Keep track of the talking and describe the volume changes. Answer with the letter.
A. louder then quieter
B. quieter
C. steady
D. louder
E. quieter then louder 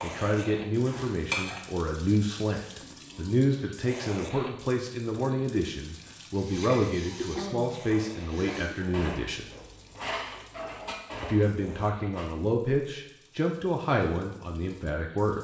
C.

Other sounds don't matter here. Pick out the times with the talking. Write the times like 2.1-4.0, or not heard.
0.0-9.4, 11.2-15.3.